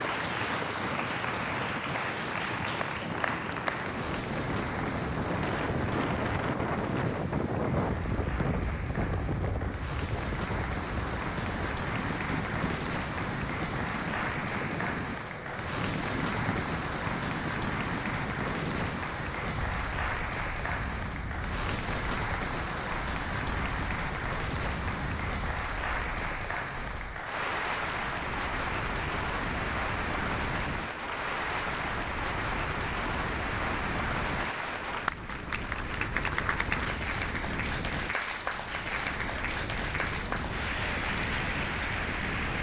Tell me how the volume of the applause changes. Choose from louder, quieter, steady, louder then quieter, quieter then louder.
steady.